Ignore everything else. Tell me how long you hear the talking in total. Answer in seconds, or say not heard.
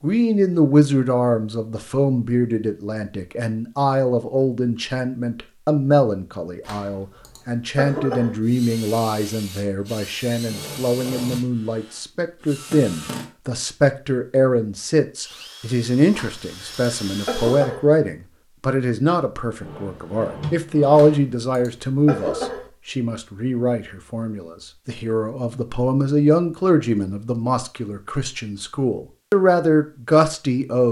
31 s.